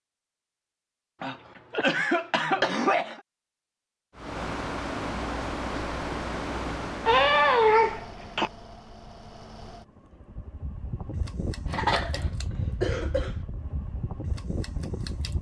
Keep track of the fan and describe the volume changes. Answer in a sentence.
The volume of the fan goes down, then up.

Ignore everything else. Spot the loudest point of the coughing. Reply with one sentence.
The volume of the coughing peaks at 8 seconds.